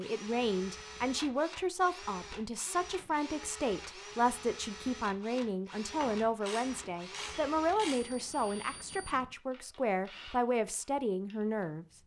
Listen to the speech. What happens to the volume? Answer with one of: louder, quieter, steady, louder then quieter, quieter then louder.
steady.